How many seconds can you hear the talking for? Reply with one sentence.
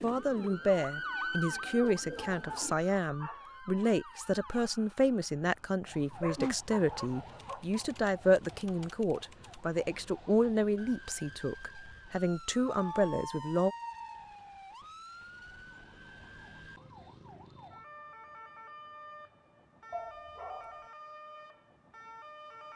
The talking can be heard for 14 seconds in total.